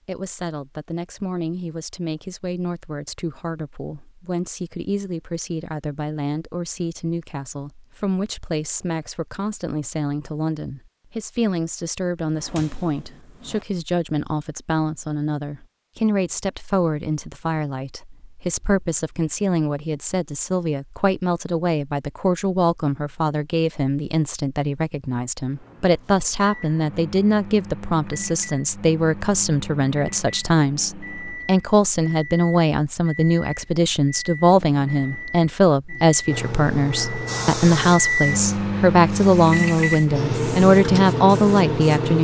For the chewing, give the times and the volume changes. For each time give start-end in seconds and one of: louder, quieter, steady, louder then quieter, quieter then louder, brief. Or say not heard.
not heard.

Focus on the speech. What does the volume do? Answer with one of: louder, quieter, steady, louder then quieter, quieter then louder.
louder.